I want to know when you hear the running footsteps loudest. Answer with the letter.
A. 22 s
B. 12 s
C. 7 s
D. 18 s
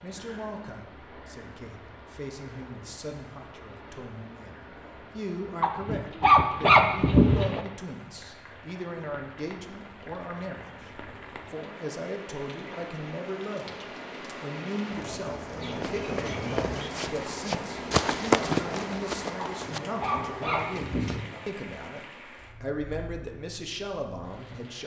D.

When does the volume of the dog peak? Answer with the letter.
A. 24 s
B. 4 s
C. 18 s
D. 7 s
D.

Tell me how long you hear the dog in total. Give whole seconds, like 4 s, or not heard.
4 s.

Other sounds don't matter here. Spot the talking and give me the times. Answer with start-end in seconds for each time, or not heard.
0.0-10.9, 11.5-24.8.